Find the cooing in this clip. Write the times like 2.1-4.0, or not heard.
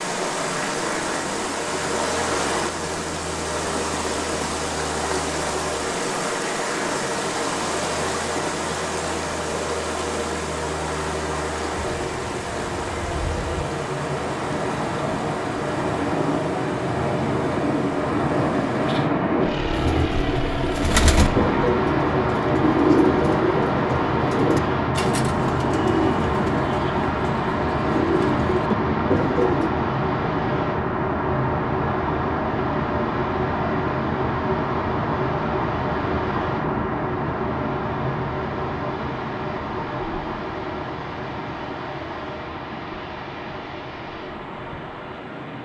19.7-29.7.